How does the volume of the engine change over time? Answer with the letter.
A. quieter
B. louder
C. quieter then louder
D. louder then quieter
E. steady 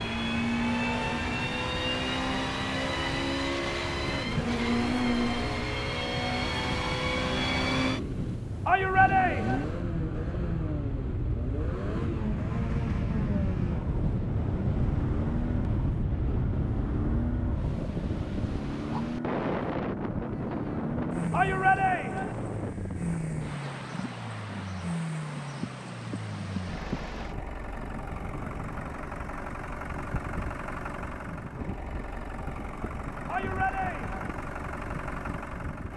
A.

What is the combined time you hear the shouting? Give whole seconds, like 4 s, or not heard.
3 s.